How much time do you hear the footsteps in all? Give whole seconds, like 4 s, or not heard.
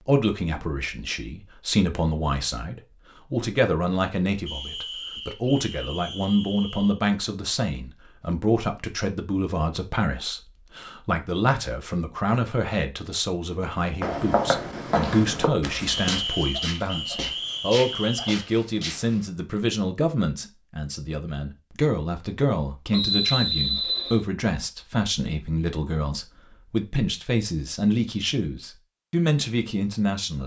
5 s.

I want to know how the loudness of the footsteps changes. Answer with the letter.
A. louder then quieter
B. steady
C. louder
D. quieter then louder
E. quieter
E.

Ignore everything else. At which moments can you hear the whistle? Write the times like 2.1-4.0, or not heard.
4.5-7.0, 15.8-18.4, 22.9-24.2.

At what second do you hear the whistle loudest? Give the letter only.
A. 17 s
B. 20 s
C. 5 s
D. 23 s
D.